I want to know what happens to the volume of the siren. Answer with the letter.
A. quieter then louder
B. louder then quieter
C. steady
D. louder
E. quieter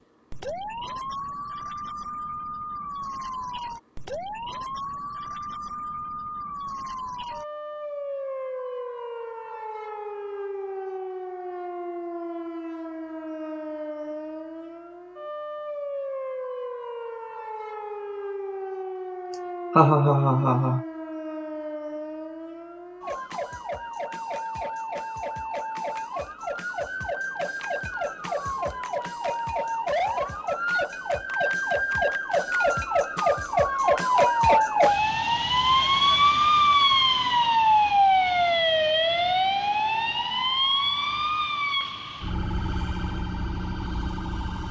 D.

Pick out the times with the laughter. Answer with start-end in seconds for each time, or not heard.
19.8-20.9.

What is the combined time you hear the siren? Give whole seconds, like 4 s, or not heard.
44 s.